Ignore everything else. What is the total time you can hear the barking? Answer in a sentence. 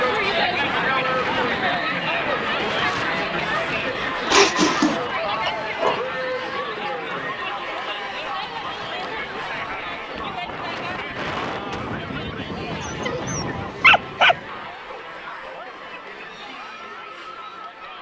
You can hear the barking for 4 seconds altogether.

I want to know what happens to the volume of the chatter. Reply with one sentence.
The volume of the chatter goes down.